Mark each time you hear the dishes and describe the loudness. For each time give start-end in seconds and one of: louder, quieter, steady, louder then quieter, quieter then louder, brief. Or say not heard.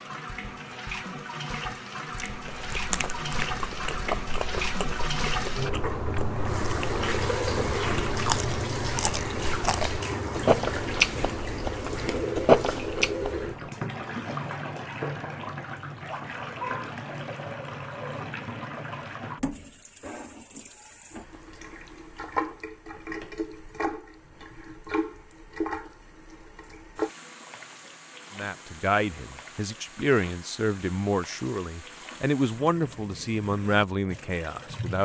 not heard.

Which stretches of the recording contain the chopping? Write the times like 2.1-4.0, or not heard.
not heard.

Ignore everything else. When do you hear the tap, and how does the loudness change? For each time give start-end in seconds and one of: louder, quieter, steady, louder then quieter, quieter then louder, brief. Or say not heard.
0.0-35.0 quieter.